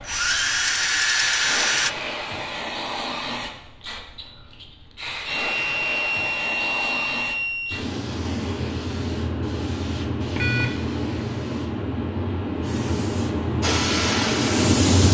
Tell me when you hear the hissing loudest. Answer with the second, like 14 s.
15 s.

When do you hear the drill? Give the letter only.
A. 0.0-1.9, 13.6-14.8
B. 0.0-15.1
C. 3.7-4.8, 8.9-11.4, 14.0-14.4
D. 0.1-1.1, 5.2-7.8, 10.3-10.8
A.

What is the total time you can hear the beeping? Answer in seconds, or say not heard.
4 s.